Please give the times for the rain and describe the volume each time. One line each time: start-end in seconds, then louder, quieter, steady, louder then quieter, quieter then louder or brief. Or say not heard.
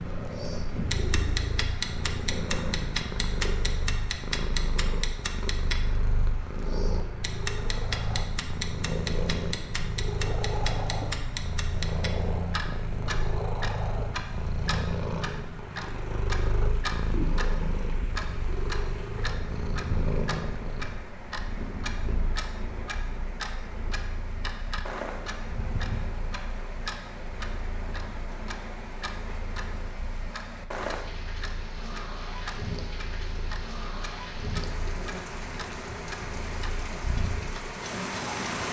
0.0-38.6 louder.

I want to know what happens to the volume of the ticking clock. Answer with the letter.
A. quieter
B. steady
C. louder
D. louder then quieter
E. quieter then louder
A.